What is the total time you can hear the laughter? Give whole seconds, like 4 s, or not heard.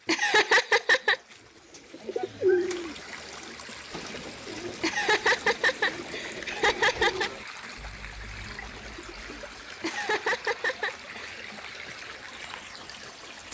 5 s.